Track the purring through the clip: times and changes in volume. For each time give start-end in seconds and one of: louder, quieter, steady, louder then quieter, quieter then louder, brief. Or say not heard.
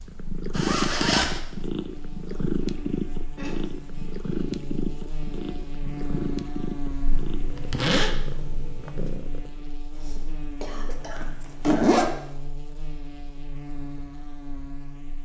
0.0-9.6 quieter.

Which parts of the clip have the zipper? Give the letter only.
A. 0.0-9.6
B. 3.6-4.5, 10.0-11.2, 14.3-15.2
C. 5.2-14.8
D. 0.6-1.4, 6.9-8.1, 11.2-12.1
D.